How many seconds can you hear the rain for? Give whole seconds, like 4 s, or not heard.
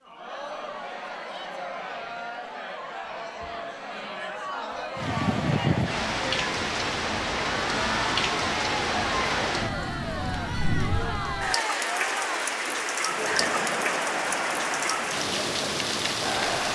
12 s.